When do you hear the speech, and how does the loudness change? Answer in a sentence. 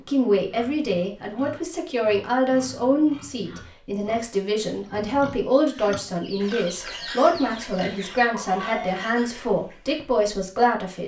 You can hear the speech from 0.0 to 11.0 s, at a steady volume.